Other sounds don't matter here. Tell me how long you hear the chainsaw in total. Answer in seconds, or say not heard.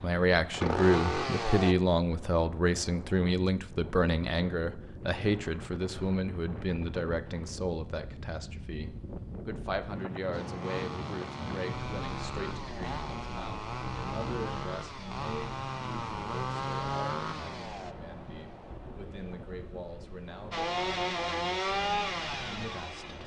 12 s.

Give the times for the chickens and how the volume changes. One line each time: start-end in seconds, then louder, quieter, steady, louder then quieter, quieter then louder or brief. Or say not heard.
not heard.